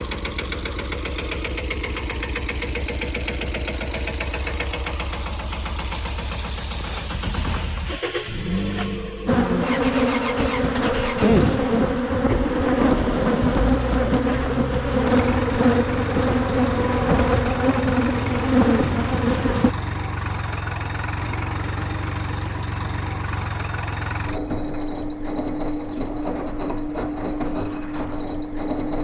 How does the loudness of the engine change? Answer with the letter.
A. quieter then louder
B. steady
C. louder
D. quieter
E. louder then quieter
B.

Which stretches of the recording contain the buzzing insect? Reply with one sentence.
You can hear the buzzing insect from 9.2 to 19.8 s.